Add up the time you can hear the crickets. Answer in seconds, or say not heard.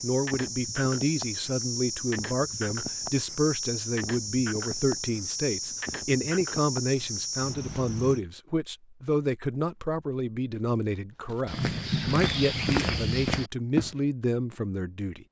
8 s.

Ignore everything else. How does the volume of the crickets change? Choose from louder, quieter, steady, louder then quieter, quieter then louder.
steady.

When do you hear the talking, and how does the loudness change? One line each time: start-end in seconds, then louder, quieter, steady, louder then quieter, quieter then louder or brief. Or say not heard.
0.0-15.2 steady.